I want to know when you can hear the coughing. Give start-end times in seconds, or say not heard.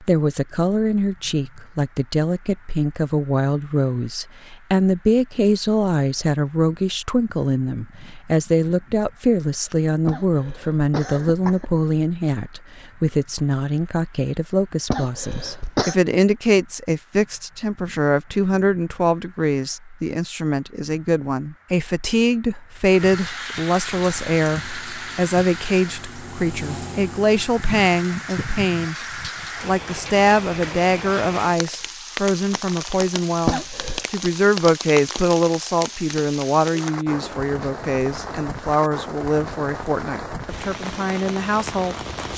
10.1-11.8, 14.9-15.9, 33.5-34.0.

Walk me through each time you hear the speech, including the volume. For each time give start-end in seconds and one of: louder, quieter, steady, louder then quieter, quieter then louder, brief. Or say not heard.
0.0-42.3 steady.